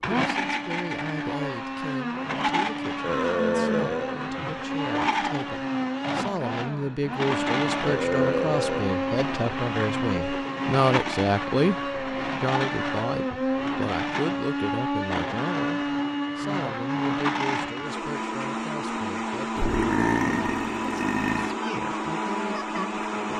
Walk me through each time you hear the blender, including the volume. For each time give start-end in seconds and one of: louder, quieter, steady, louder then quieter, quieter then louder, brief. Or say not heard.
0.0-23.3 steady.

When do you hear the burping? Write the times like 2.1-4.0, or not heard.
3.0-4.2, 7.8-9.0, 19.6-21.6.